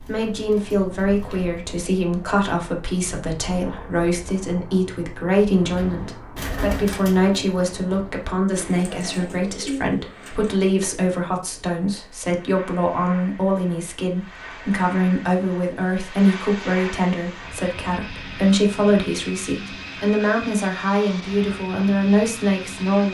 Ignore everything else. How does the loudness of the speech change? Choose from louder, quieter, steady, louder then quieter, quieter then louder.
steady.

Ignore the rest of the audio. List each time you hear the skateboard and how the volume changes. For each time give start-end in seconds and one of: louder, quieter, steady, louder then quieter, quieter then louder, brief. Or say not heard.
not heard.